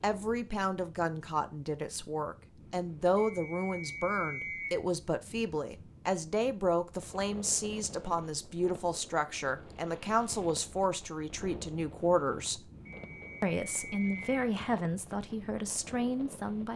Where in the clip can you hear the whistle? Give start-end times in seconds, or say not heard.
3.1-4.8, 12.8-14.3.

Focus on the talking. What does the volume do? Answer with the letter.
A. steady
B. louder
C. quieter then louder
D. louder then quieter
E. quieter
A.